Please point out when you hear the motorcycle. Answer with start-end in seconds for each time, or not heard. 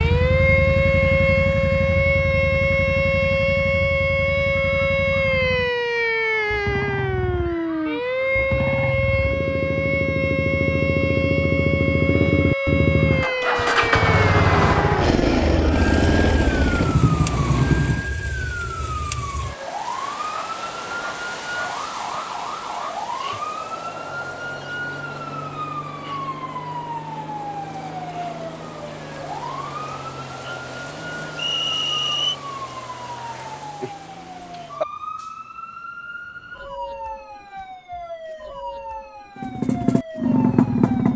0.0-18.1, 39.4-41.1.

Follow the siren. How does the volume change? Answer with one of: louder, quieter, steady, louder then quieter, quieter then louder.
quieter.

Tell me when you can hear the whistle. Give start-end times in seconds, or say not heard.
31.4-32.4.